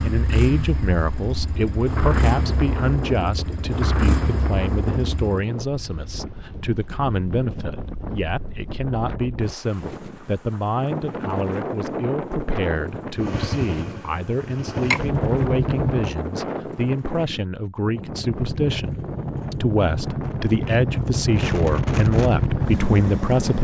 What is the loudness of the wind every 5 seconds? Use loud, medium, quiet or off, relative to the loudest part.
loud, medium, loud, loud, loud.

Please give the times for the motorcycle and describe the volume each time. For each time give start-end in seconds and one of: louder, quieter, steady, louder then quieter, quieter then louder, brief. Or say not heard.
0.0-5.5 steady
13.2-16.1 brief
18.4-23.5 louder.